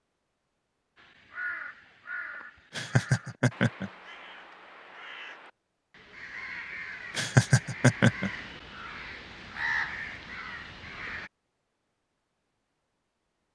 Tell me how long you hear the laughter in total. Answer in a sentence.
The laughter can be heard for 2 seconds in total.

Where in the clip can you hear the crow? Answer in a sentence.
You can hear the crow from 0.9 to 11.3 s.